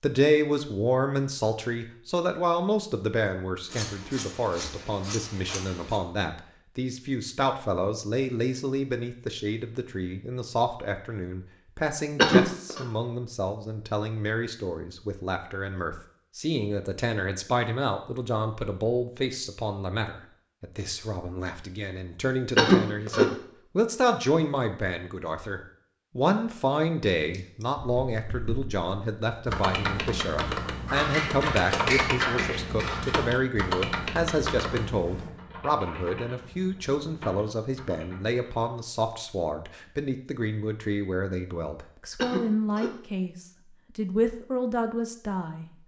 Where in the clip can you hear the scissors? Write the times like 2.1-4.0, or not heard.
3.6-6.0, 30.9-33.1.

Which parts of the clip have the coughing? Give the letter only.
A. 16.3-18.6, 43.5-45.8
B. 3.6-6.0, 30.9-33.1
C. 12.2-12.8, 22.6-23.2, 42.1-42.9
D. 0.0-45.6
C.